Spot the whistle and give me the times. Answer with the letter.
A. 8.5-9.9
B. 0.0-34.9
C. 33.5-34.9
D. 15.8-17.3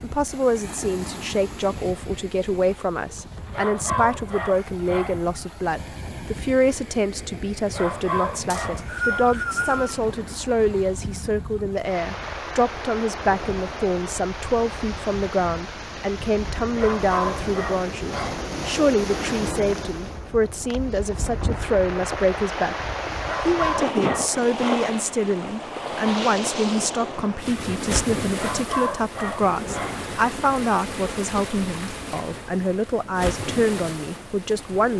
A.